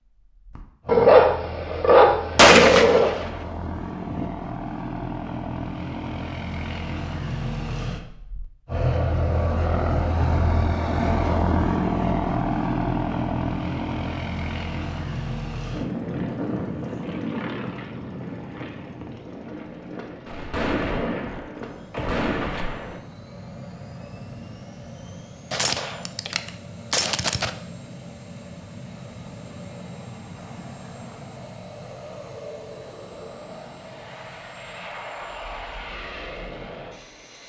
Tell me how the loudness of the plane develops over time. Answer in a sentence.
The loudness of the plane goes up, then down.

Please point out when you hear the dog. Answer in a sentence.
You can hear the dog from 0.6 to 3.1 s.